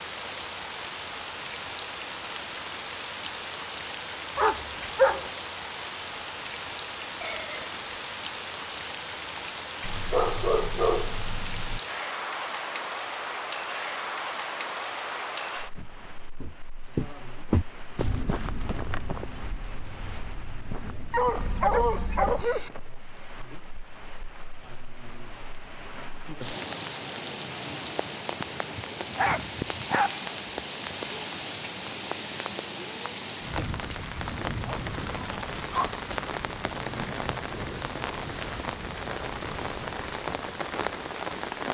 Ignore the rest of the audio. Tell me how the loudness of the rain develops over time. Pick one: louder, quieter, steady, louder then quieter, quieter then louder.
quieter then louder.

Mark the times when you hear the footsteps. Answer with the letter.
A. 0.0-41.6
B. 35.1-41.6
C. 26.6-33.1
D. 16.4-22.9
D.